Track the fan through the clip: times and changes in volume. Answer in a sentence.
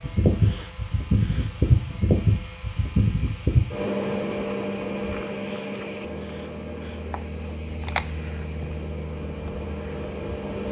The fan can be heard from 0.0 to 10.6 s, getting quieter.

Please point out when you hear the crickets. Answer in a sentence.
The crickets can be heard from 2.0 to 10.6 s.